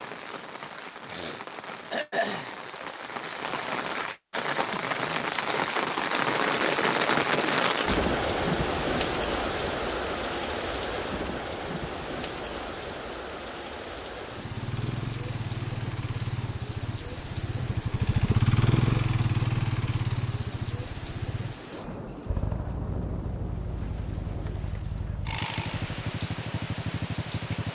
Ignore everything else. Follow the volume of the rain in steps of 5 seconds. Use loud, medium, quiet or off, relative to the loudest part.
medium, loud, medium, quiet, quiet, quiet.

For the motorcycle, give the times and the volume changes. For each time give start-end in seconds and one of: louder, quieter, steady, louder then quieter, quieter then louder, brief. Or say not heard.
14.3-27.7 louder then quieter.